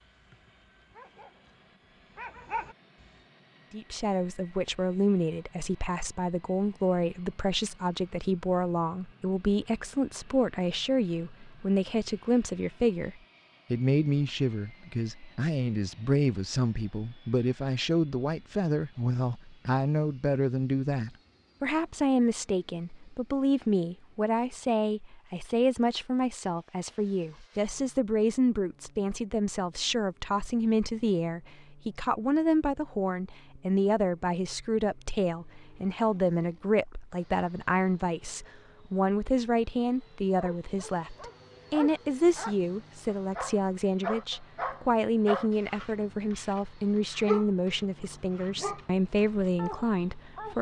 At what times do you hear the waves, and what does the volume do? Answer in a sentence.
The waves can't be heard in this clip.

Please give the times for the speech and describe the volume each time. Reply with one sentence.
The speech can be heard from 3.7 to 50.5 s, at a steady volume.